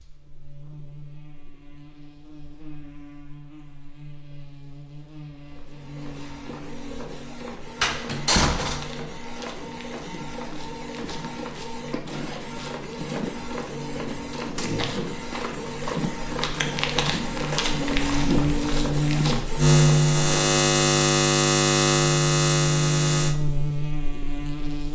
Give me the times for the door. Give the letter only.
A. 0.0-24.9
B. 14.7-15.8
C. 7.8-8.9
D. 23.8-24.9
C.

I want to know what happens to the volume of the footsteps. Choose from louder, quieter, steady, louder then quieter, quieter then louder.
louder.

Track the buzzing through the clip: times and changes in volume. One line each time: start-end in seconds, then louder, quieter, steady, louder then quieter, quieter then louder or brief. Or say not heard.
0.0-24.9 louder.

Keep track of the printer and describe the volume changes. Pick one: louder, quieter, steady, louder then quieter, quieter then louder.
louder.